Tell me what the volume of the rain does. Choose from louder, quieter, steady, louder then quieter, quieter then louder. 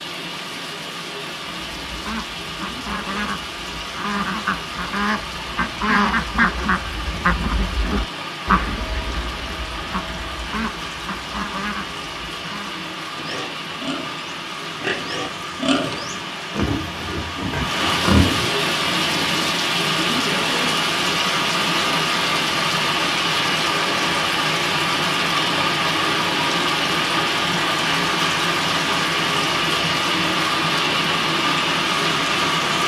louder.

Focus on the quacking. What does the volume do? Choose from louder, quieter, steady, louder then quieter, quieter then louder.
louder then quieter.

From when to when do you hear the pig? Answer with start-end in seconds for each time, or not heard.
13.2-18.5.